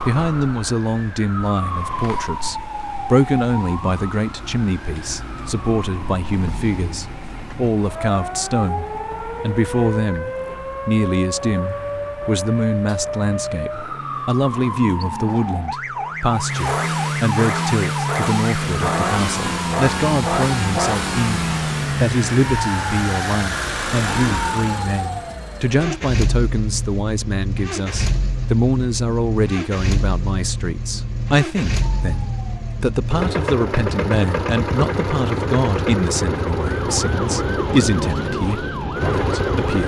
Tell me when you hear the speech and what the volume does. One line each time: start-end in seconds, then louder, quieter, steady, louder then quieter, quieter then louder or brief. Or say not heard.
0.0-39.8 steady.